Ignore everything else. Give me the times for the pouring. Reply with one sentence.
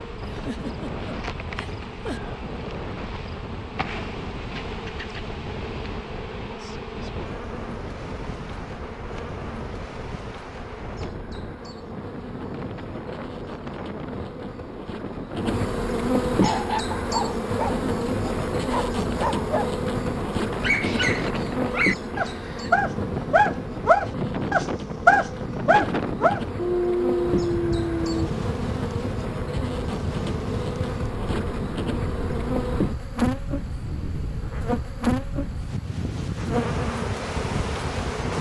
You can't hear the pouring here.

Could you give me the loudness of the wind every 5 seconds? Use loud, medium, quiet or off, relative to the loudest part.
medium, medium, medium, loud, loud, loud, loud, loud.